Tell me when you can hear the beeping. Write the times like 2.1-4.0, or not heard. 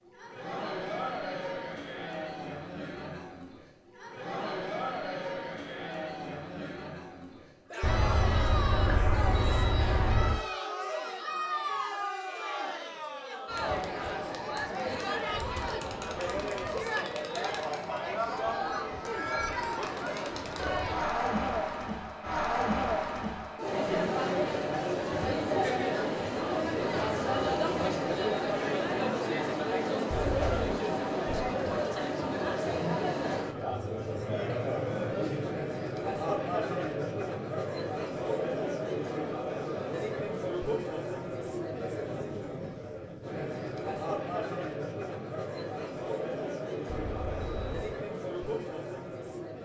7.8-10.4, 30.1-30.8, 46.9-48.0.